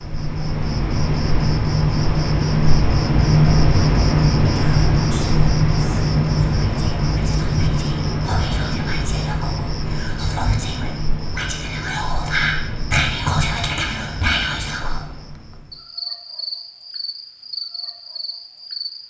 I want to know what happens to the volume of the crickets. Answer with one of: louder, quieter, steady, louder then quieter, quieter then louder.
quieter.